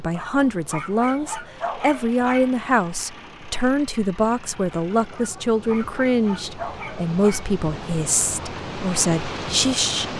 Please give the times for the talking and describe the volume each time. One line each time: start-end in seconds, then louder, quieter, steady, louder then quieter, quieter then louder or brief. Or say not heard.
0.0-10.1 steady.